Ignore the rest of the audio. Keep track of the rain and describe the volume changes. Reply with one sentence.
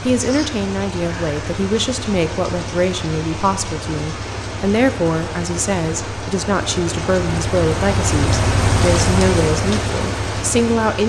The loudness of the rain goes up.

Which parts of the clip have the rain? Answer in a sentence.
The rain can be heard from 0.0 to 11.0 s.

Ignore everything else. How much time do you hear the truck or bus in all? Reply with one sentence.
The truck or bus can be heard for 11 seconds in total.